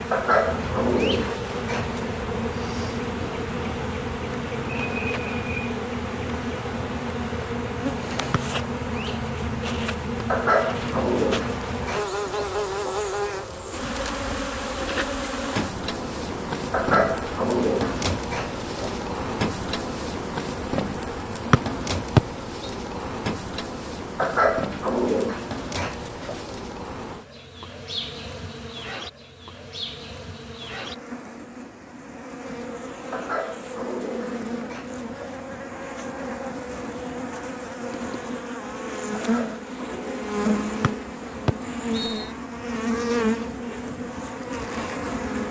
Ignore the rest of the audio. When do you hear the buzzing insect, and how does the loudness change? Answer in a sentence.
The buzzing insect can be heard from 0.0 to 45.4 s, getting quieter then louder.